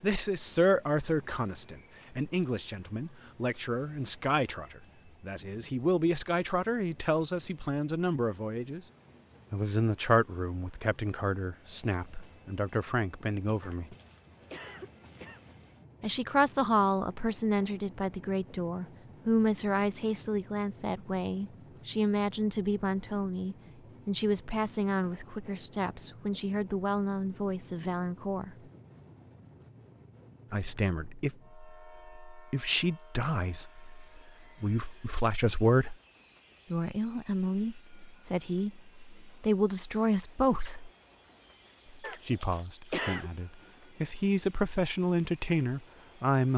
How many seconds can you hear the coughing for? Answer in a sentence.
The coughing can be heard for 3 seconds in total.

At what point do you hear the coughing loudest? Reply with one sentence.
The loudest moment of the coughing is at 43 seconds.